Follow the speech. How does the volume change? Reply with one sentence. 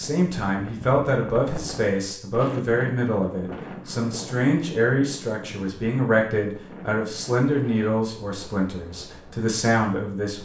The loudness of the speech stays about the same.